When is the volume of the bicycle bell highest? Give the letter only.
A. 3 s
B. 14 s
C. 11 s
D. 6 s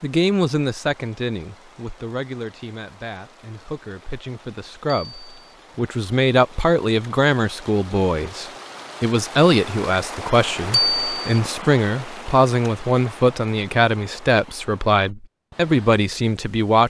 C.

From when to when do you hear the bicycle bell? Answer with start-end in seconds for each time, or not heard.
4.8-5.5, 10.7-11.4.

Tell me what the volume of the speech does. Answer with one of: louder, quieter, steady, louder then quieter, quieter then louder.
louder.